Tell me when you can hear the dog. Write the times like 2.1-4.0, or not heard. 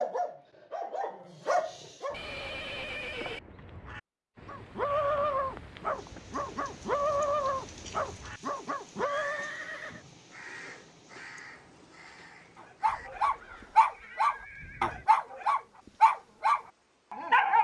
0.0-2.1, 4.5-9.5, 12.8-17.5.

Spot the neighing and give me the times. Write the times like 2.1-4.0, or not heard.
2.1-3.4, 8.9-10.1, 12.8-15.1.